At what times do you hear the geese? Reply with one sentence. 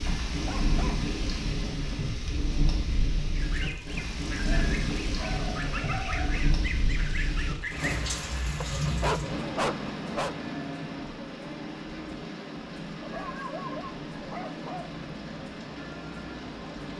You can hear the geese from 3.3 to 8.0 s.